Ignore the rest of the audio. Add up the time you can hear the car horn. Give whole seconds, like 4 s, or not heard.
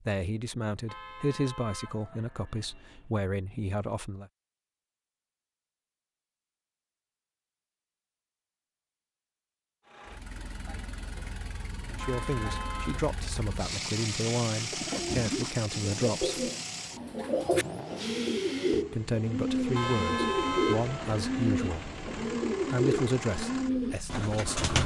6 s.